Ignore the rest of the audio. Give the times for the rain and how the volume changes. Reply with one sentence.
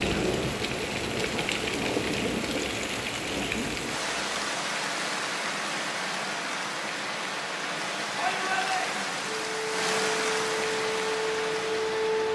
The rain can be heard from 0.0 to 12.3 s, at a steady volume.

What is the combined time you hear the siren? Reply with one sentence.
You can hear the siren for 3 seconds altogether.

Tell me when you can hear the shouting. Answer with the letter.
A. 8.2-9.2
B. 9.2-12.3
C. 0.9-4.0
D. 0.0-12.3
A.